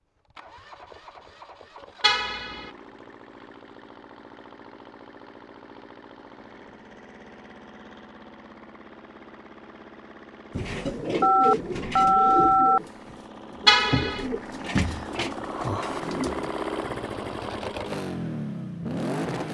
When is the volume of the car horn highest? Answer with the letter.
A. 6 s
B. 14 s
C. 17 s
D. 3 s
B.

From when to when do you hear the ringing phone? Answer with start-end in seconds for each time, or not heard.
11.2-12.8.